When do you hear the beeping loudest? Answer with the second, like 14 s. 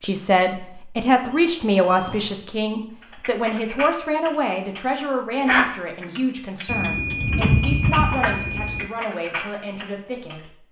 8 s.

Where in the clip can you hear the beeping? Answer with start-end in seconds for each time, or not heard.
1.1-2.4, 6.7-8.9.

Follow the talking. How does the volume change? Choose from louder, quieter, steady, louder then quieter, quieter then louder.
quieter.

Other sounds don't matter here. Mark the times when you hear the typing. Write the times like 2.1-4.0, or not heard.
3.0-10.3.